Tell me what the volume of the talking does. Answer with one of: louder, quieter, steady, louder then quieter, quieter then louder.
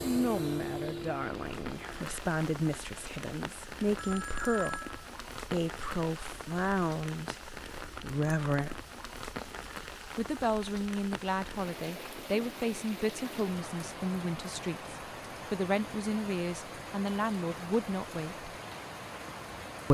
steady.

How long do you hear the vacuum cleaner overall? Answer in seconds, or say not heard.
2 s.